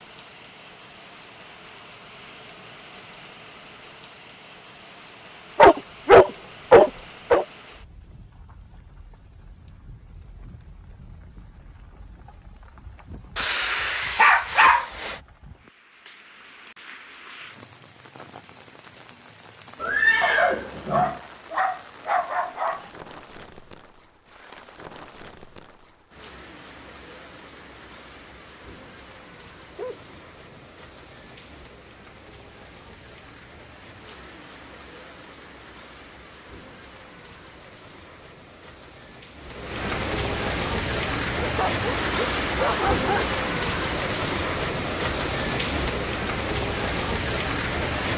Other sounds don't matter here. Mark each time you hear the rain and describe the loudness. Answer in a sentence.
The rain can be heard from 0.0 to 48.1 s, getting louder.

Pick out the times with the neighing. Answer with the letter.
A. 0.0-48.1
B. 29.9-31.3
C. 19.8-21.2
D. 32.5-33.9
C.